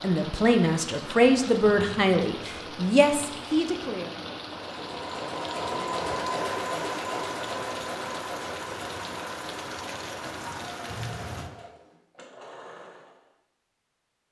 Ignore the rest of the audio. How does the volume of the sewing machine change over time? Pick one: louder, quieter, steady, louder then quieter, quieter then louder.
quieter.